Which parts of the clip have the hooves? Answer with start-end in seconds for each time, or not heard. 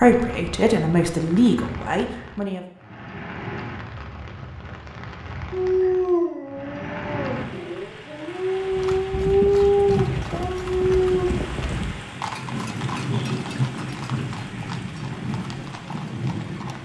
8.6-16.7.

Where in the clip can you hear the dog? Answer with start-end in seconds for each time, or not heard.
5.5-11.3.